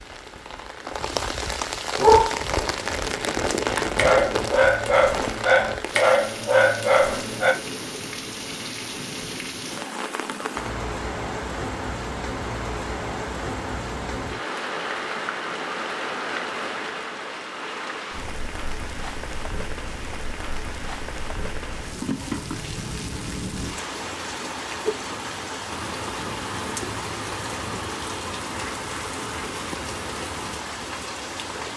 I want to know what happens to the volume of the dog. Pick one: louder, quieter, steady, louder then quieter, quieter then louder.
louder.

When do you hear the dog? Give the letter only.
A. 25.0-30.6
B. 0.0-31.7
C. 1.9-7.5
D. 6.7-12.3
C.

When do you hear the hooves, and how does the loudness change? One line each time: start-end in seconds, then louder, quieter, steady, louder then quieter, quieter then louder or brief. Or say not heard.
not heard.